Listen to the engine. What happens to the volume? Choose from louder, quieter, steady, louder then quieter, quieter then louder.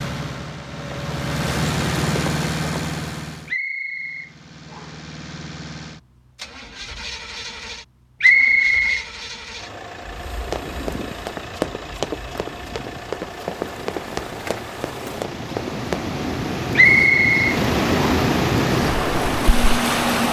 quieter then louder.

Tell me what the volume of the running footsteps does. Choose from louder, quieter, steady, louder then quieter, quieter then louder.
steady.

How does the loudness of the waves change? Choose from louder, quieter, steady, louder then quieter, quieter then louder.
louder.